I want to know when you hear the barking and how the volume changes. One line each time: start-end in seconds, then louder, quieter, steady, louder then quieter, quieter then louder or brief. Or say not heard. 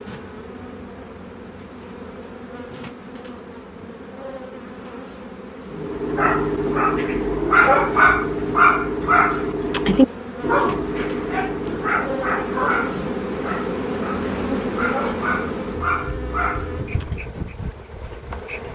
5.7-17.2 quieter.